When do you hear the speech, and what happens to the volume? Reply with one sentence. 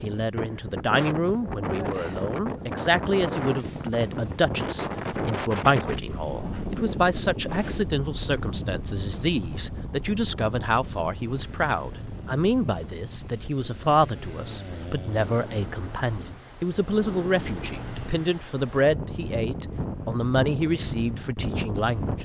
The speech can be heard from 0.0 to 22.1 s, at a steady volume.